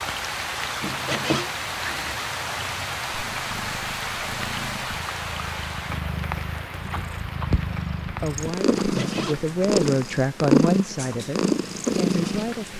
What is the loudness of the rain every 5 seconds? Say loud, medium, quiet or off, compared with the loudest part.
loud, medium, quiet.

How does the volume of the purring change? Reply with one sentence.
The loudness of the purring goes up.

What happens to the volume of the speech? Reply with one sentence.
The loudness of the speech goes up, then down.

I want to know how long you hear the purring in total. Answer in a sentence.
You can hear the purring for 13 seconds altogether.